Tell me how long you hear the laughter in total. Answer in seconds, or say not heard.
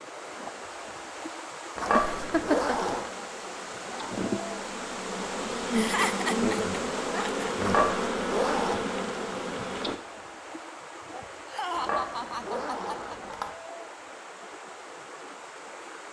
5 s.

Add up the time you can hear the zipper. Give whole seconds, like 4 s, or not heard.
4 s.